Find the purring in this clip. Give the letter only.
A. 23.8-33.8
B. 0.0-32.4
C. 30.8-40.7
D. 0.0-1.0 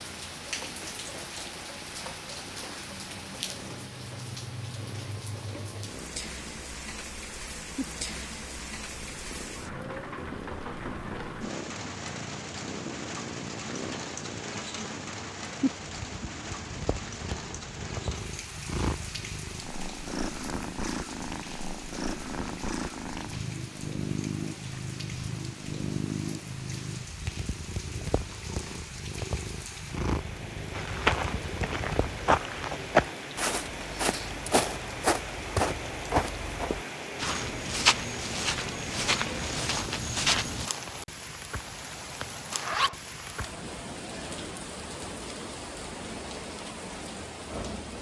B.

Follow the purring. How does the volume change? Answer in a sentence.
The volume of the purring goes up.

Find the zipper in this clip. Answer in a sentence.
The zipper can be heard from 42.5 to 43.5 s.